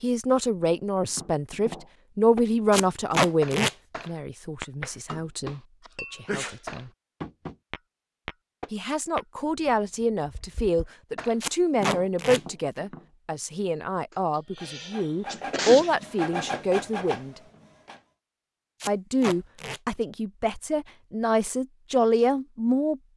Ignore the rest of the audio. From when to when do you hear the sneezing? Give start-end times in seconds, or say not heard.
5.8-6.5, 14.1-16.1.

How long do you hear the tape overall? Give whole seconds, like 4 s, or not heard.
3 s.